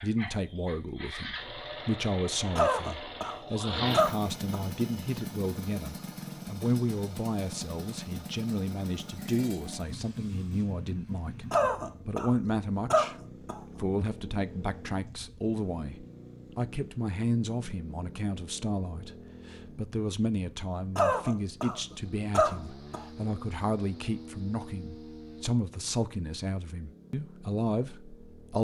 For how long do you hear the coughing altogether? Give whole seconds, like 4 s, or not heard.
6 s.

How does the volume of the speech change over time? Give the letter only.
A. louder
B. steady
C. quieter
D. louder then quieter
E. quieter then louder
B.